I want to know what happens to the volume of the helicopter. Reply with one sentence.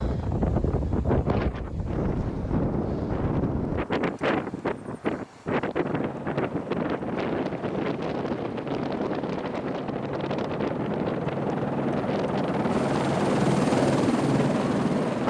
The volume of the helicopter goes up.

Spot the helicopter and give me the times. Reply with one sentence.
The helicopter can be heard from 5.8 to 15.2 s.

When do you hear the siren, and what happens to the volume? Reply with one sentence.
The siren can't be heard in this clip.